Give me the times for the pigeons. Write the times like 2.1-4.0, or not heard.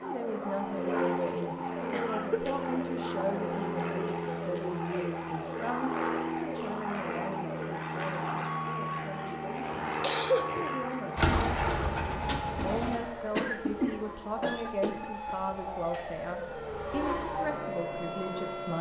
11.2-13.0.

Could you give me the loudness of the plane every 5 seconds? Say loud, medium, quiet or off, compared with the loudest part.
loud, loud, loud, medium.